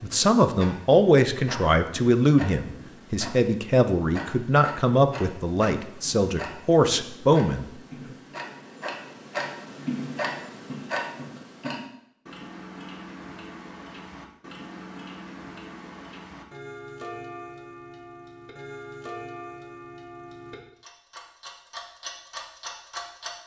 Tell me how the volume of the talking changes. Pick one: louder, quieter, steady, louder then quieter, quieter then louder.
steady.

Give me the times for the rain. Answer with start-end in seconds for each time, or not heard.
not heard.